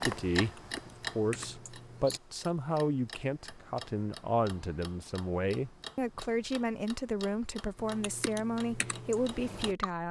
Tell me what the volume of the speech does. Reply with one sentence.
The loudness of the speech stays about the same.